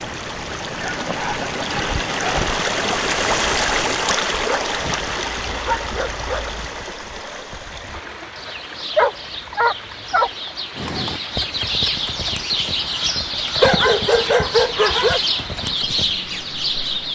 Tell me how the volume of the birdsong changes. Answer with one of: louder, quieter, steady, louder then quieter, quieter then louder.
louder.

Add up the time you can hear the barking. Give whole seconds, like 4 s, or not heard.
7 s.